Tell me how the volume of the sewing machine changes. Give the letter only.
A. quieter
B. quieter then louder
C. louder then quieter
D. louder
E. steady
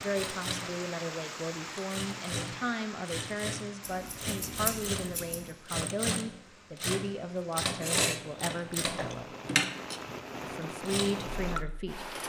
D.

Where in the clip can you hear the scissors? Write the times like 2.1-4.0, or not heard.
3.8-5.5.